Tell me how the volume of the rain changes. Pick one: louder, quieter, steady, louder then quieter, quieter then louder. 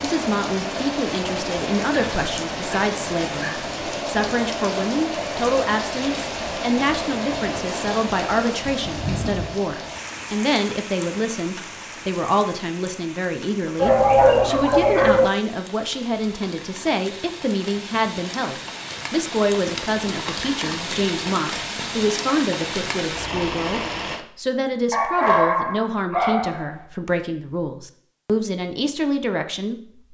quieter then louder.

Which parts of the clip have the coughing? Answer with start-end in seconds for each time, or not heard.
not heard.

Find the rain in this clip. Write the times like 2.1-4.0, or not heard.
0.0-24.2.